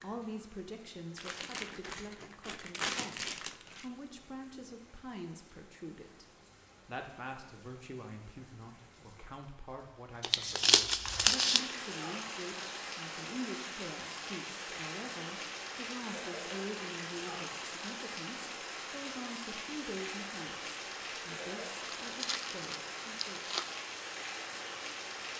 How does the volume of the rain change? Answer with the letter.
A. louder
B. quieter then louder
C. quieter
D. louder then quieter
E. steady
A.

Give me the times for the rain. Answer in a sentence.
You can hear the rain from 0.0 to 25.3 s.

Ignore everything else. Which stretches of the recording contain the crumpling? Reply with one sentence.
You can hear the crumpling from 1.1 to 3.9 s, from 10.2 to 11.7 s and from 22.1 to 23.6 s.